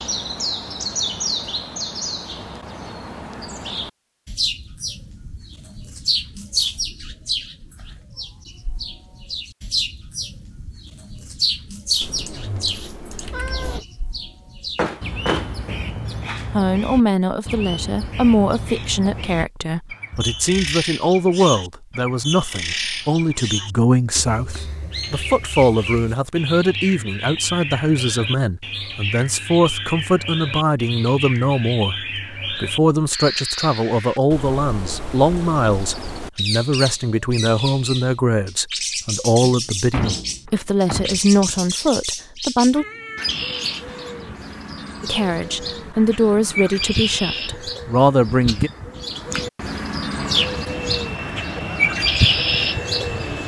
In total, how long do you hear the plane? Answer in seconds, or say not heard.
3 s.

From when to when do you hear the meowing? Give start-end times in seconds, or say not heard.
12.0-13.8, 20.1-20.6, 42.8-43.4.